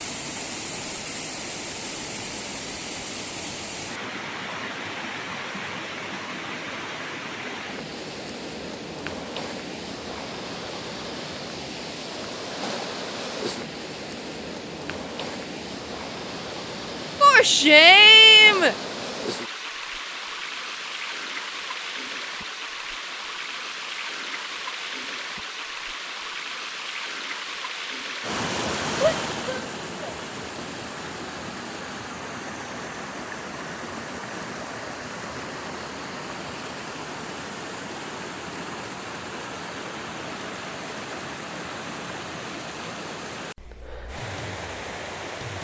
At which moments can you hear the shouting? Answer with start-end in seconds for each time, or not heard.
17.2-18.8, 29.0-30.1.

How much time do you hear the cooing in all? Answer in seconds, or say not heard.
not heard.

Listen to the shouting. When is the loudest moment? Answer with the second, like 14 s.
18 s.